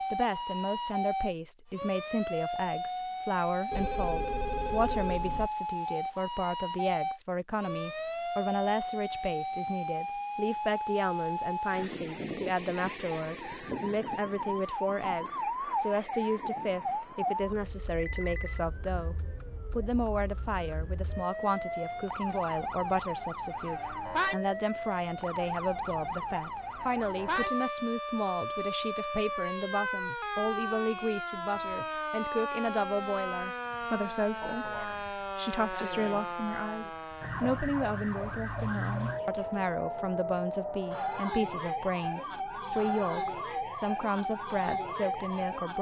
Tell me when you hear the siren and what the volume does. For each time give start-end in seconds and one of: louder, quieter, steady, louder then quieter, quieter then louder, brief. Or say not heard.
0.0-45.7 steady.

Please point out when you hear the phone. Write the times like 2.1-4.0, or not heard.
3.7-5.5, 17.9-18.6, 38.6-39.6.